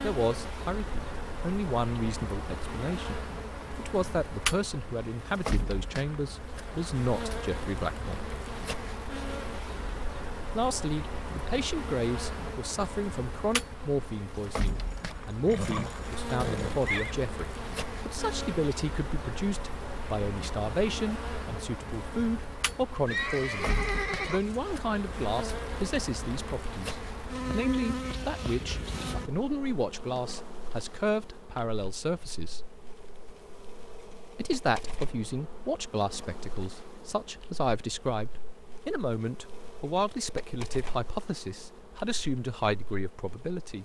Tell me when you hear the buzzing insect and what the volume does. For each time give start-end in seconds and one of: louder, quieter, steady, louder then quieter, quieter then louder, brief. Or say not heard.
0.0-43.8 quieter.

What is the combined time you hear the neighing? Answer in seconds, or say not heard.
4 s.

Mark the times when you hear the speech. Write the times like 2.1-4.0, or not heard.
0.0-8.3, 10.6-32.8, 34.4-43.8.